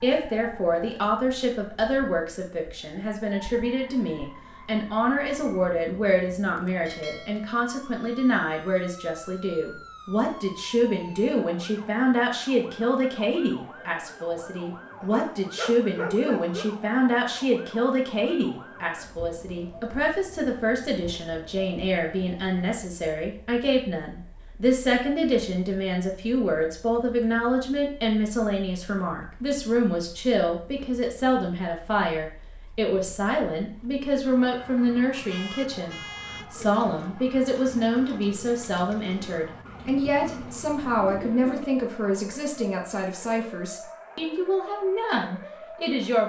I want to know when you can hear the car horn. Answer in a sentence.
You can hear the car horn from 35.2 to 36.5 s.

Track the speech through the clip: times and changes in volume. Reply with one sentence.
The speech can be heard from 0.0 to 46.2 s, at a steady volume.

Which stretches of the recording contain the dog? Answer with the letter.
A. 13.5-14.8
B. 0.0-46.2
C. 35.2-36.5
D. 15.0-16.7
D.